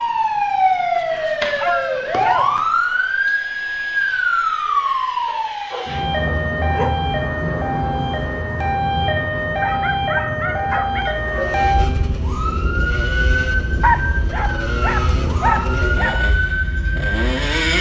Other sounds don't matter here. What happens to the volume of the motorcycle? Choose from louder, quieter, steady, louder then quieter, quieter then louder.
steady.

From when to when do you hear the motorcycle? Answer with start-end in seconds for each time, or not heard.
11.3-17.7.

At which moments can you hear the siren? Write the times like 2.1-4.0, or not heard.
0.0-17.7.